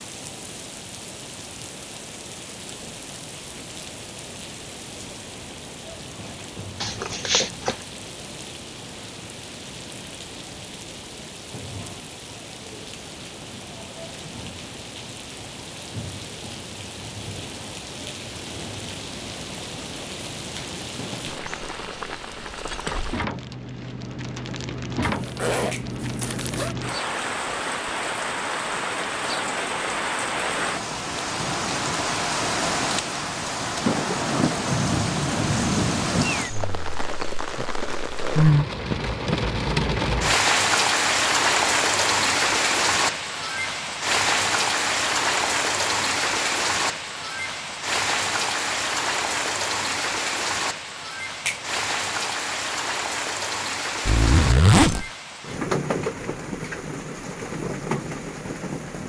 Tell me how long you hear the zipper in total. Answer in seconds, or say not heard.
4 s.